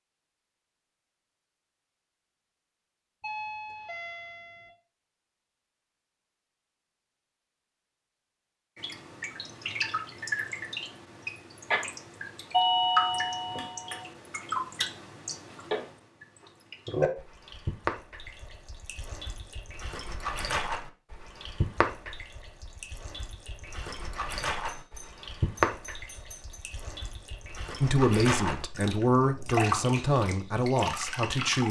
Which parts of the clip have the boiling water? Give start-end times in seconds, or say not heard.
not heard.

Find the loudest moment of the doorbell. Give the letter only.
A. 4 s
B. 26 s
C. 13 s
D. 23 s
C.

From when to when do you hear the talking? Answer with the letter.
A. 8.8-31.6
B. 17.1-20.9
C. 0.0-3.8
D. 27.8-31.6
D.